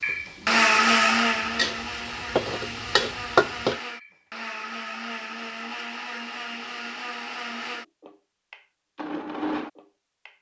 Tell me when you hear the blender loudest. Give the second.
1 s.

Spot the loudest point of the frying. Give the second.
3 s.